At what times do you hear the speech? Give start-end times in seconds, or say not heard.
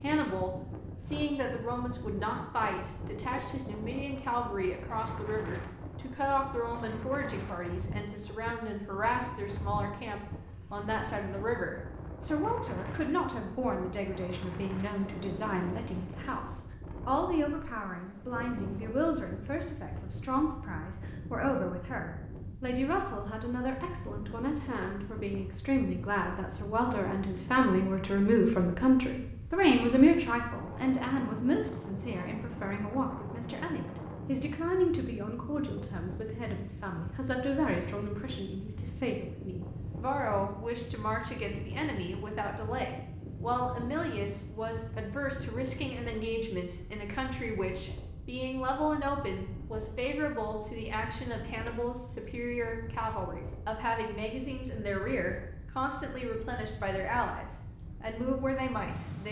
0.0-59.2.